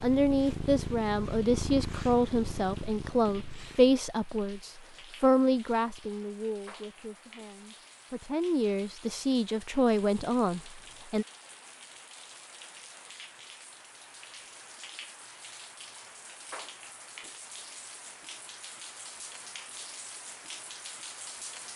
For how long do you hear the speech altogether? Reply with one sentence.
You can hear the speech for 11 seconds altogether.